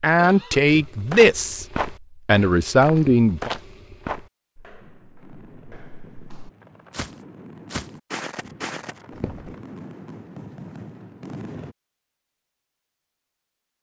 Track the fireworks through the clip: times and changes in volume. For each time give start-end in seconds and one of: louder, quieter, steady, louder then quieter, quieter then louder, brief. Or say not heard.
4.8-11.8 louder.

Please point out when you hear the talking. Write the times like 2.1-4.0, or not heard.
0.0-1.6, 2.2-3.5.